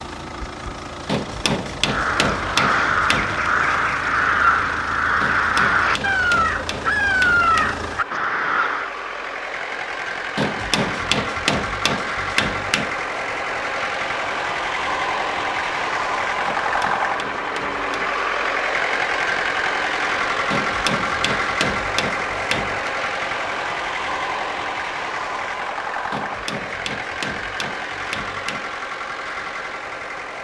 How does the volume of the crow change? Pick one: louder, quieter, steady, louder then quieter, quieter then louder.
steady.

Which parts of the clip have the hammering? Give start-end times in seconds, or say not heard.
1.1-3.4, 5.2-7.8, 10.3-12.9, 16.4-18.2, 20.5-22.9, 26.1-28.7.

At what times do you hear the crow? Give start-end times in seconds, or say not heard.
1.8-8.9.